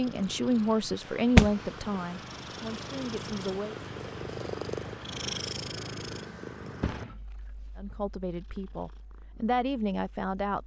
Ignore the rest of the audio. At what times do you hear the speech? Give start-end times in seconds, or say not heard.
0.0-3.8, 7.8-10.6.